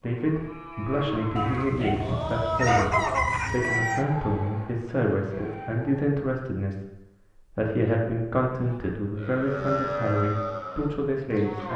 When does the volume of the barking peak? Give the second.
3 s.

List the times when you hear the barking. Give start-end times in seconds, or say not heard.
1.4-3.5.